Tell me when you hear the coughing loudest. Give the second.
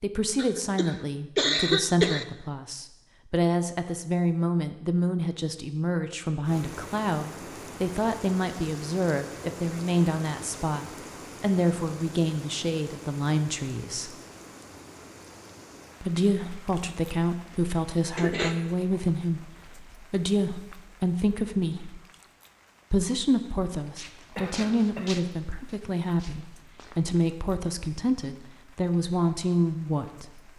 2 s.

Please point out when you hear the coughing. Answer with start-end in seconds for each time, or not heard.
0.3-2.2, 18.1-18.6, 24.4-25.2.